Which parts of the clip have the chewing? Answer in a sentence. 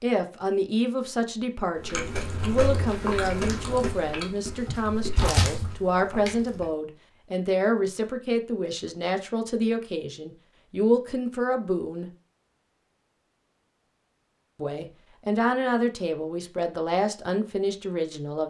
The chewing can be heard from 1.8 to 6.7 s.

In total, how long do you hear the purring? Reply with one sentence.
You can't hear the purring here.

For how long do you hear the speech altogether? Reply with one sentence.
The speech can be heard for 16 seconds in total.